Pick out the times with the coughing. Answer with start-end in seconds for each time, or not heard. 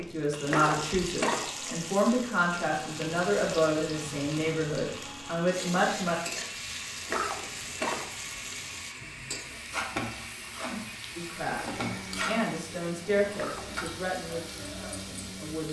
0.5-1.5, 7.0-8.1, 13.3-13.8.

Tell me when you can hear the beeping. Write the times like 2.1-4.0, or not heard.
not heard.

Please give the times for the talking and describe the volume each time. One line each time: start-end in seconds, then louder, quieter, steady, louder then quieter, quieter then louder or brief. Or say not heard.
0.0-6.2 steady
11.2-15.6 louder then quieter.